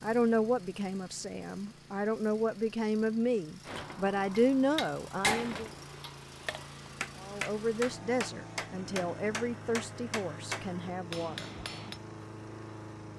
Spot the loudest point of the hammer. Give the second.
5 s.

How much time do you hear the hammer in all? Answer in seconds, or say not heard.
8 s.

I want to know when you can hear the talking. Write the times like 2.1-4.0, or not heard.
0.0-5.7, 7.2-11.4.